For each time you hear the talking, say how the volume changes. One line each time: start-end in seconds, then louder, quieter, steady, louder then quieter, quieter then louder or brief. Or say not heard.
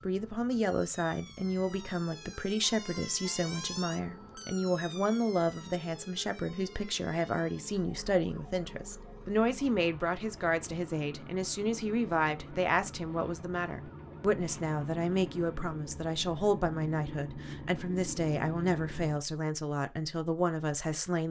0.0-21.2 steady.